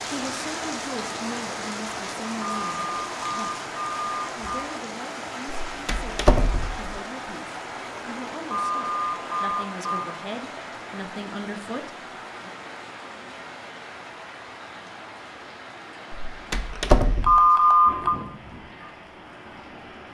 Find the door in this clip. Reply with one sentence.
The door can be heard from 5.7 to 7.0 s and from 16.1 to 17.4 s.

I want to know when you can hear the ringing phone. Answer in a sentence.
The ringing phone can be heard from 2.4 to 4.7 s, from 8.4 to 10.1 s and from 17.2 to 18.1 s.